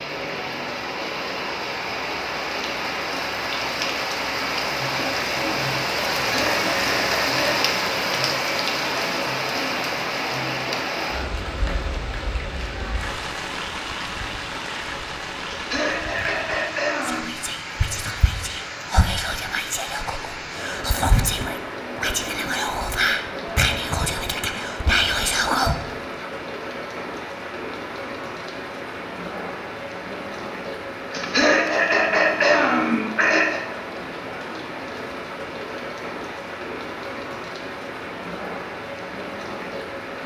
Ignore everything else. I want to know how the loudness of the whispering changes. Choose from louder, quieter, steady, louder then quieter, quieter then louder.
louder.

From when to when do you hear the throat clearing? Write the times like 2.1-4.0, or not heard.
6.2-7.7, 15.4-17.2, 31.1-33.6.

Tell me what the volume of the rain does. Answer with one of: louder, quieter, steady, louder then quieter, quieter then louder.
quieter.